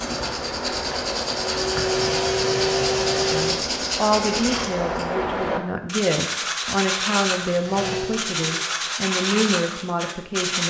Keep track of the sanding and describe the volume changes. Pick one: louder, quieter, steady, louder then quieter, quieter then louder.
steady.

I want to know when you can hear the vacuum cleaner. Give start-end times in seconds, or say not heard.
0.0-3.5, 7.0-8.7.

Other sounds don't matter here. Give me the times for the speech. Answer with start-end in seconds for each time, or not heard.
3.2-10.6.